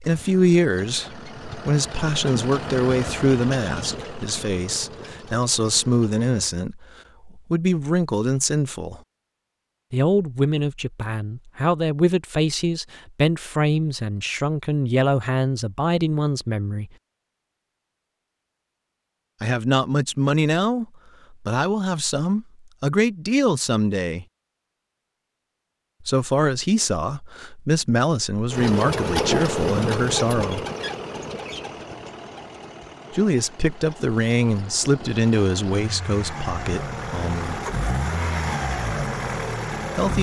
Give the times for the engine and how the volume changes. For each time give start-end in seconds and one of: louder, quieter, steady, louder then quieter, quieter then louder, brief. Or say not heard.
0.0-6.5 louder then quieter
28.5-40.1 quieter then louder.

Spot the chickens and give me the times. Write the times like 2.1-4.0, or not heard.
not heard.